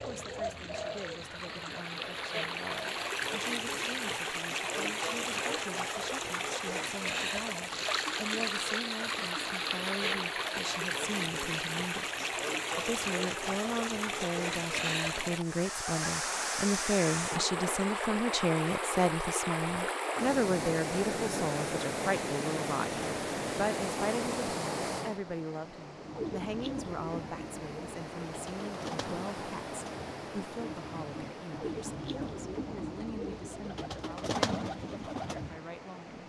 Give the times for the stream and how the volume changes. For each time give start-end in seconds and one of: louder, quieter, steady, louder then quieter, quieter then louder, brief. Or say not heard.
0.0-36.2 quieter.